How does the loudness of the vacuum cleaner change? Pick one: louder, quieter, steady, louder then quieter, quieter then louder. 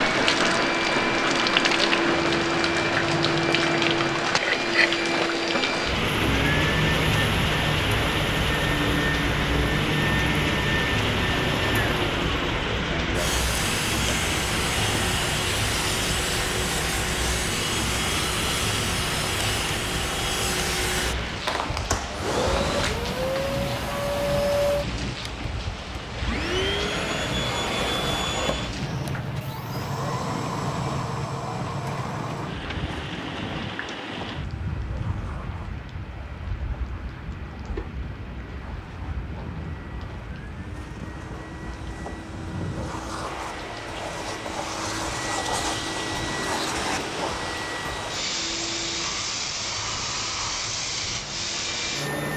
quieter then louder.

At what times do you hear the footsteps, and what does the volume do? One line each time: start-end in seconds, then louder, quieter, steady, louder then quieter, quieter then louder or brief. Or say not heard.
not heard.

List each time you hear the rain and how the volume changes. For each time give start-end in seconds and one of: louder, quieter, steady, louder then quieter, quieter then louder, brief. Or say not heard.
0.0-52.3 quieter.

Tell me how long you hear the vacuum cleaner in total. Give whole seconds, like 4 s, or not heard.
52 s.